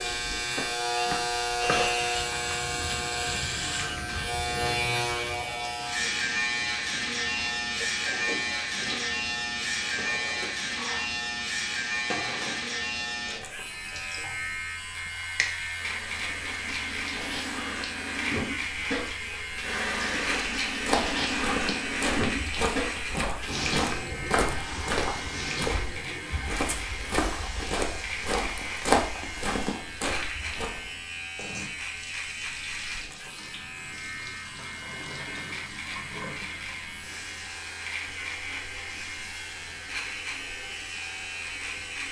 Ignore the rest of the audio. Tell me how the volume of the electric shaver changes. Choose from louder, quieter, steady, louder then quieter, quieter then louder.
quieter.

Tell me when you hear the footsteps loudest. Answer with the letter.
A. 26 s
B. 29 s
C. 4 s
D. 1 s
B.